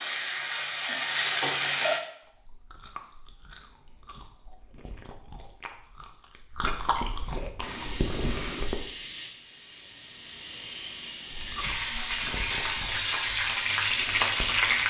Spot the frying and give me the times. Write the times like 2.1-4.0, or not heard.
0.0-2.0, 7.6-14.8.